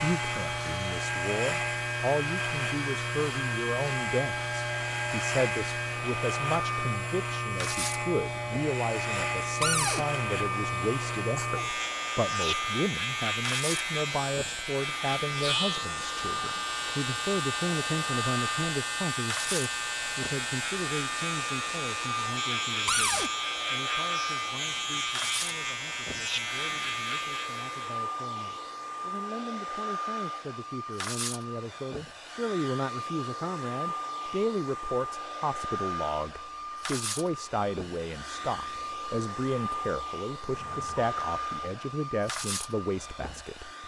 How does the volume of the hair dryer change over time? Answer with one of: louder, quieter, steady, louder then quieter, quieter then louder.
steady.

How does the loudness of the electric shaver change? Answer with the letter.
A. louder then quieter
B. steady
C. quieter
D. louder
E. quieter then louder
B.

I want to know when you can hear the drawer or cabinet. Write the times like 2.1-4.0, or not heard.
9.6-10.1, 22.9-23.3, 40.4-41.1.